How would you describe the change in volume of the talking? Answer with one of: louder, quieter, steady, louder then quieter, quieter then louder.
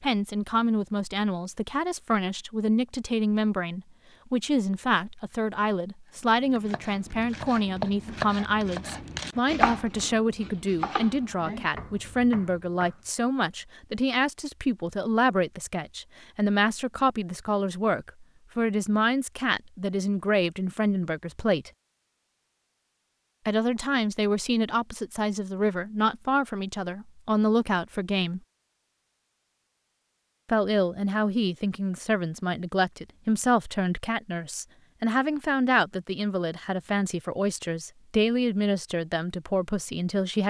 steady.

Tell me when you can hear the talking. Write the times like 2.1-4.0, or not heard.
0.0-21.7, 23.4-28.4, 30.4-40.4.